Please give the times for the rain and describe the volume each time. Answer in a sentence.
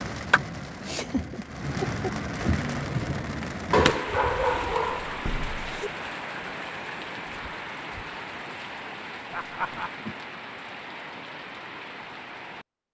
The rain can be heard from 0.0 to 12.7 s, getting quieter.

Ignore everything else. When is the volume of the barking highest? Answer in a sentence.
The volume of the barking peaks at 4 seconds.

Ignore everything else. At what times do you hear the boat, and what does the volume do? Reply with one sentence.
You can't hear the boat here.